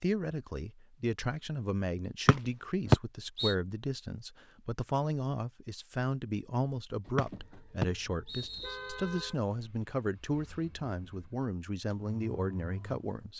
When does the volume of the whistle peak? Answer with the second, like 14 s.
3 s.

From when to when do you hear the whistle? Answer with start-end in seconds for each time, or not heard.
2.2-3.5, 7.2-9.1.